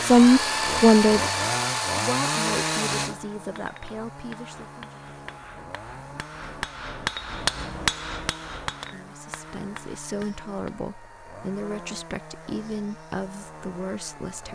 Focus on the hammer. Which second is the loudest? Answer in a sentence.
The volume of the hammer peaks at 8 seconds.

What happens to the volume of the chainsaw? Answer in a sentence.
The volume of the chainsaw goes down.